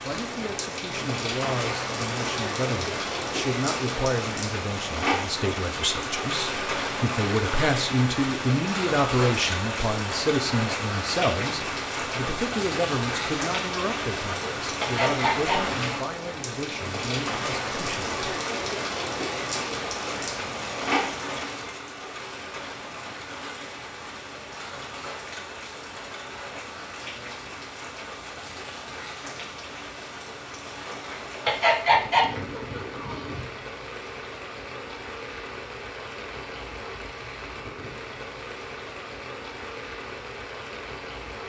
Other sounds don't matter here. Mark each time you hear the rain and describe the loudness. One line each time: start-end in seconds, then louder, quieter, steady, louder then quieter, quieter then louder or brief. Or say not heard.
0.0-41.4 quieter.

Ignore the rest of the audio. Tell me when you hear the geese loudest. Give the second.
32 s.